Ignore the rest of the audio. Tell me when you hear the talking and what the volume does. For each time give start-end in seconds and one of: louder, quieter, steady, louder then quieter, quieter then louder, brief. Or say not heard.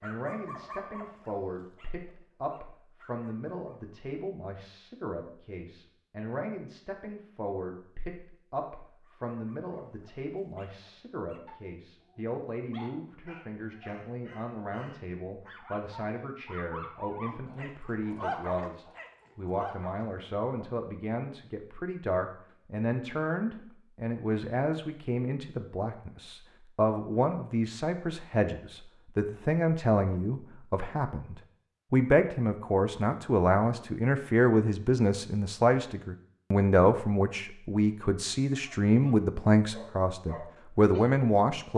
0.0-41.7 louder.